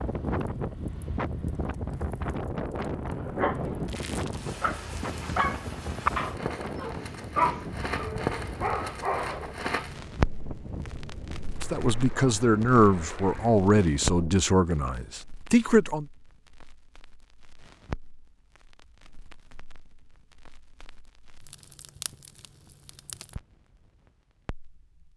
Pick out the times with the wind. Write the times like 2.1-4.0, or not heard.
0.0-14.5.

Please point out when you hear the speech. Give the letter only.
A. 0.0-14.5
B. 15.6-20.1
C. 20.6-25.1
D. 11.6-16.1
D.